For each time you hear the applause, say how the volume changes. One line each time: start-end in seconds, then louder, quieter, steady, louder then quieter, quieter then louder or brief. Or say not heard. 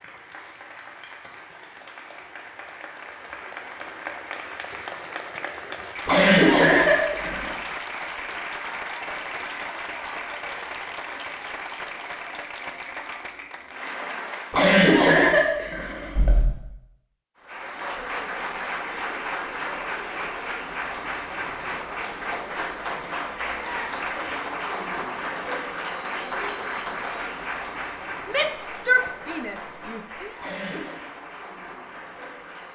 0.0-14.8 louder
17.4-32.7 quieter.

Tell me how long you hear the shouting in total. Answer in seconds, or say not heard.
2 s.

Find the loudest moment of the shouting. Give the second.
29 s.